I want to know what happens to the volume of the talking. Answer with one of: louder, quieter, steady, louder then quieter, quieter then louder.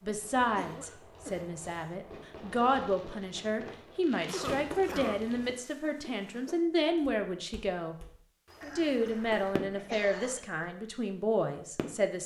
steady.